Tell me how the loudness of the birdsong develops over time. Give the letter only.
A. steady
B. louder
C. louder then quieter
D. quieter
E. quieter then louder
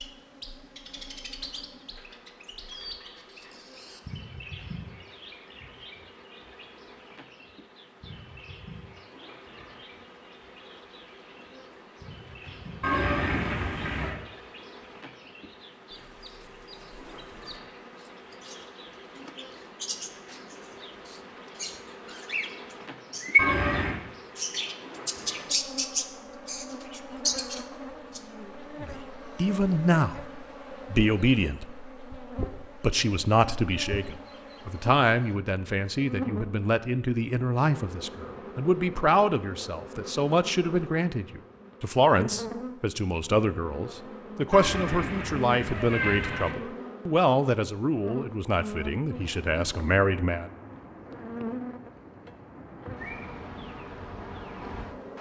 E.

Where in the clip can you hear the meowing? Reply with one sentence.
The meowing can be heard from 12.8 to 14.2 s, from 23.4 to 24.0 s and from 44.5 to 46.5 s.